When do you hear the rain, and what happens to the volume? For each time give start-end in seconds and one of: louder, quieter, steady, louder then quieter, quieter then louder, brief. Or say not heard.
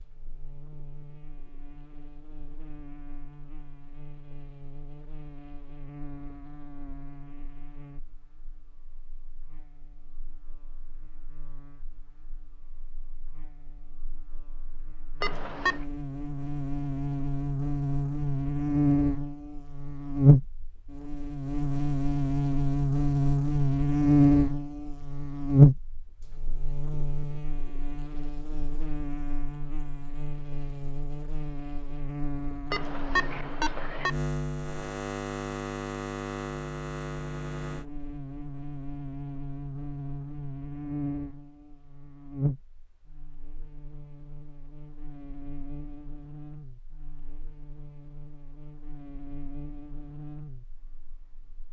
not heard.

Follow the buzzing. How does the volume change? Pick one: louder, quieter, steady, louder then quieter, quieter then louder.
louder then quieter.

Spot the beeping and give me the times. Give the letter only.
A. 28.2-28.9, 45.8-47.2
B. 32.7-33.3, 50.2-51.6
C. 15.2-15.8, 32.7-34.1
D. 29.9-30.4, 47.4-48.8
C.